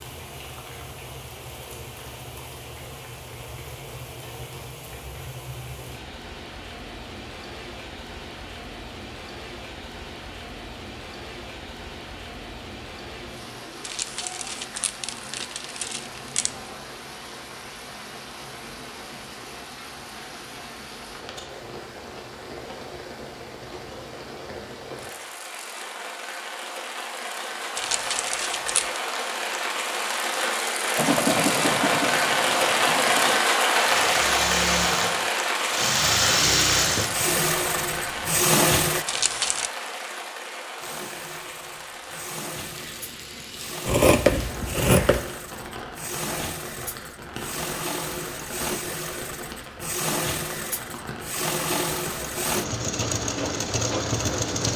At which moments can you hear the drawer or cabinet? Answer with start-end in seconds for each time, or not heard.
not heard.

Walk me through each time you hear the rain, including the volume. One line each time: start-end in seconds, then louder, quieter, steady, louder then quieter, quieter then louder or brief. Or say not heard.
0.0-54.5 louder then quieter.